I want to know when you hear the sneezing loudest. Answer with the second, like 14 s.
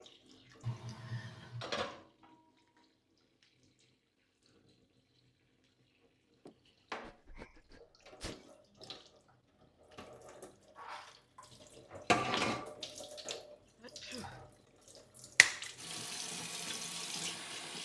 1 s.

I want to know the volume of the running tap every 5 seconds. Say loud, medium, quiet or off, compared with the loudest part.
medium, quiet, loud, loud.